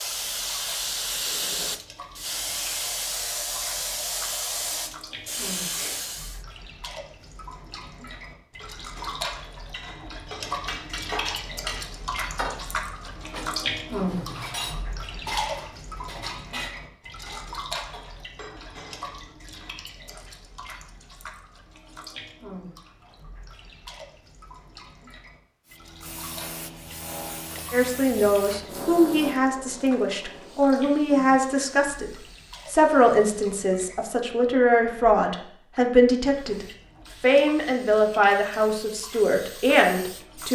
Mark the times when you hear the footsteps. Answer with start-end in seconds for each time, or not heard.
not heard.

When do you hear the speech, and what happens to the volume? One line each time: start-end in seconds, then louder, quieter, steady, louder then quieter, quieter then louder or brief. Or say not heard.
27.7-40.5 steady.